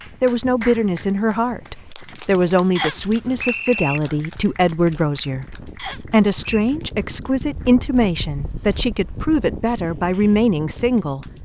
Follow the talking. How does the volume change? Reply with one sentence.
The loudness of the talking stays about the same.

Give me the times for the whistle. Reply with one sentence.
You can hear the whistle from 2.8 to 4.0 s and from 5.8 to 6.8 s.